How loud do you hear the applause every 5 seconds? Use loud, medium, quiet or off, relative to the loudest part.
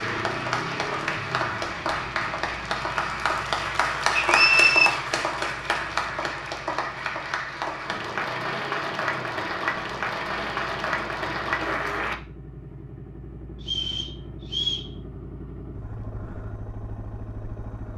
loud, loud, loud, off.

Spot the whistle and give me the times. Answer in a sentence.
The whistle can be heard from 4.2 to 4.9 s and from 13.6 to 14.9 s.